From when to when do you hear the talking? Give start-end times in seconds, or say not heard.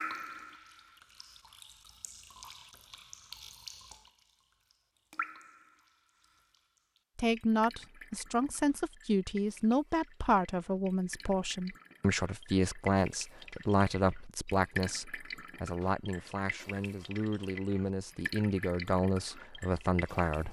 7.2-20.4.